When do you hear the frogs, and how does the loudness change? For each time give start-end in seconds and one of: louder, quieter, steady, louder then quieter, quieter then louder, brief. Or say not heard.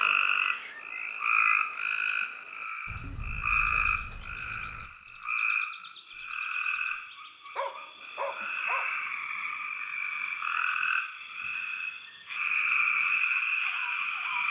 0.0-14.4 quieter then louder.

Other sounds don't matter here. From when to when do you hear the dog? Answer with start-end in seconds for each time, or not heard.
7.5-8.9.